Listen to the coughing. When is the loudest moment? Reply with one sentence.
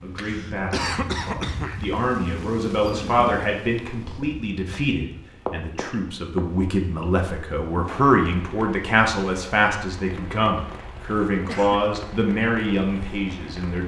The loudest moment of the coughing is at 1 second.